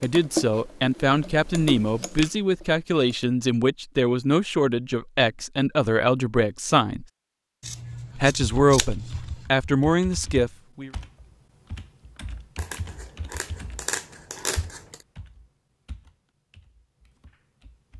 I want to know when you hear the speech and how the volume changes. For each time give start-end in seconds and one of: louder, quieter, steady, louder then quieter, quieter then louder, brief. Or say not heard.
0.0-7.0 steady
8.2-10.9 brief.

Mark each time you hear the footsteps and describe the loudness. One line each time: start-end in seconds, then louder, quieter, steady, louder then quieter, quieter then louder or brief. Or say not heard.
not heard.